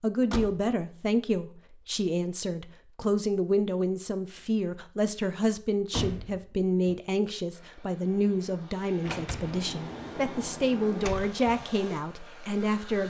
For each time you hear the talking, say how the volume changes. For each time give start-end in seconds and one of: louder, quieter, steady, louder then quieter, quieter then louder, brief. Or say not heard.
0.0-13.0 steady.